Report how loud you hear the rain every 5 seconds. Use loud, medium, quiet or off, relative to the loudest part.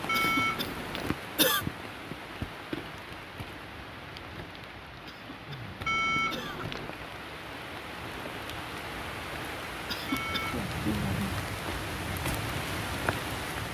medium, medium, loud.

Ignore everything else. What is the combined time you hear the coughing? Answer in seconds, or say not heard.
4 s.